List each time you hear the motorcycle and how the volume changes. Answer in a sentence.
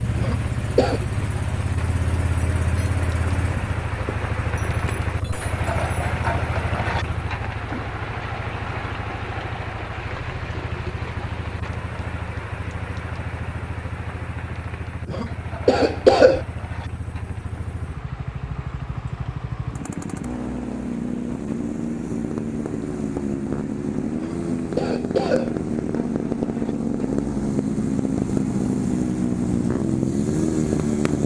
You can hear the motorcycle from 0.0 to 31.2 s, getting quieter then louder.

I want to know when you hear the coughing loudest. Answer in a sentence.
The loudest moment of the coughing is at 16 seconds.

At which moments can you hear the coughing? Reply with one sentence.
You can hear the coughing from 0.1 to 1.0 s, from 15.1 to 16.4 s and from 24.1 to 25.5 s.